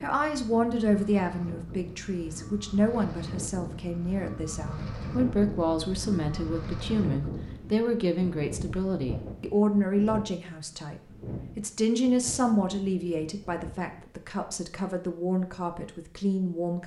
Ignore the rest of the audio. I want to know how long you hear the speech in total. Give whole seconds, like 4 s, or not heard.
17 s.